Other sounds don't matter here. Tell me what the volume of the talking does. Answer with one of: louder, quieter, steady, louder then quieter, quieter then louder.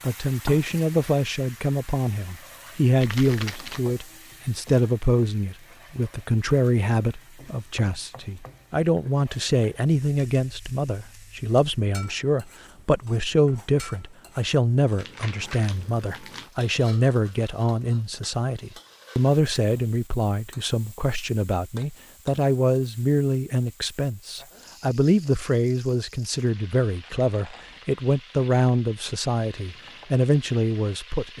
steady.